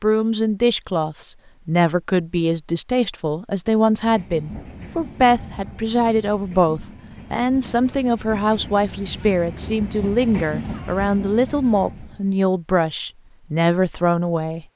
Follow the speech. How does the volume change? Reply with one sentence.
The loudness of the speech stays about the same.